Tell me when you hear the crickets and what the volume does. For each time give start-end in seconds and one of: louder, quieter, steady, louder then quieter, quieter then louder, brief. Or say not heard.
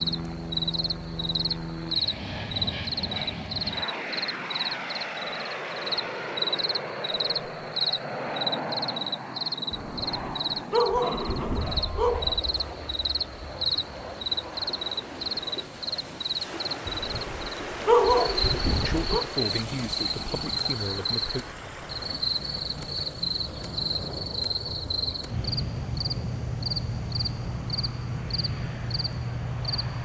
0.0-29.9 steady.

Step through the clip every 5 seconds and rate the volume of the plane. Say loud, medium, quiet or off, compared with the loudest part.
loud, loud, loud, medium, medium, loud.